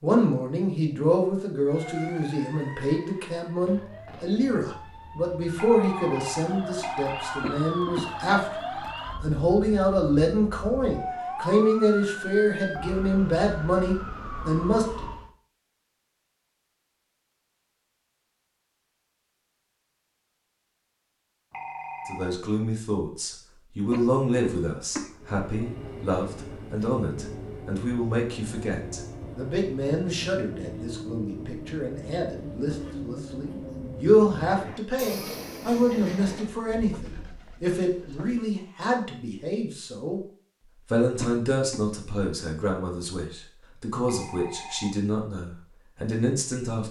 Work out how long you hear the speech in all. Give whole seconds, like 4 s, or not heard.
39 s.